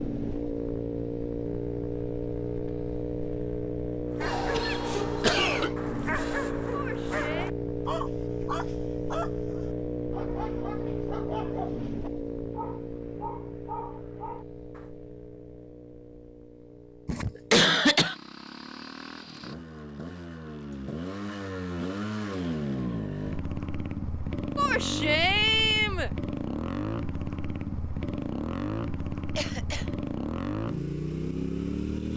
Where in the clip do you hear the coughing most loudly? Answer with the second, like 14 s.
18 s.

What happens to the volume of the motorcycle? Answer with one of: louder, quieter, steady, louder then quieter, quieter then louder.
quieter then louder.